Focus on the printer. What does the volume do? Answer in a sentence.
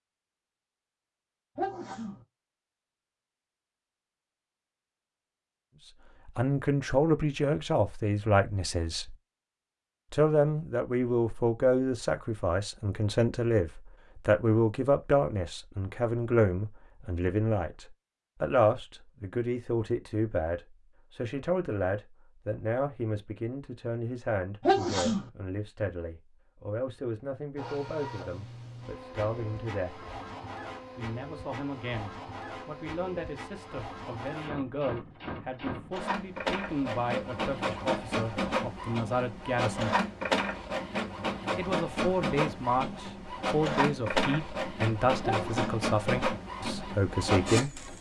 The loudness of the printer goes up.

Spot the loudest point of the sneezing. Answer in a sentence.
The loudest moment of the sneezing is at 25 seconds.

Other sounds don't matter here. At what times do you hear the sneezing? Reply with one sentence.
You can hear the sneezing from 1.6 to 2.2 s, from 24.6 to 25.3 s and from 45.2 to 45.9 s.